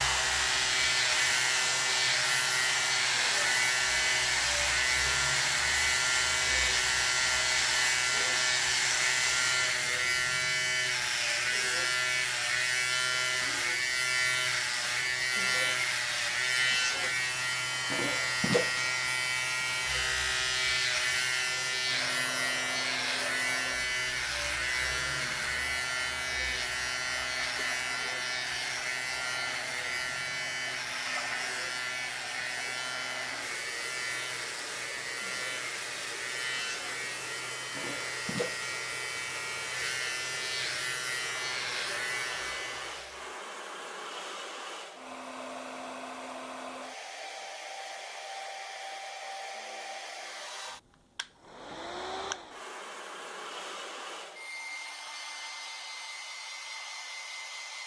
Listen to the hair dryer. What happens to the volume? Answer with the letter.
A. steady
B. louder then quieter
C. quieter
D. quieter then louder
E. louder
C.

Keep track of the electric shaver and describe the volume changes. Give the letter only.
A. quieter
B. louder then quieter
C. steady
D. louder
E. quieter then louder
A.